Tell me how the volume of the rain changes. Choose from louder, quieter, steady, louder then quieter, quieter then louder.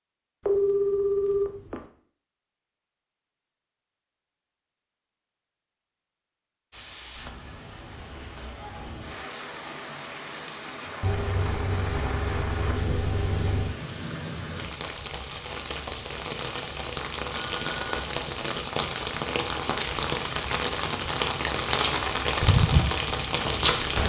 louder.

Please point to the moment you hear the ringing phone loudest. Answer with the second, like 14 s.
1 s.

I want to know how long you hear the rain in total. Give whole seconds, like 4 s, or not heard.
17 s.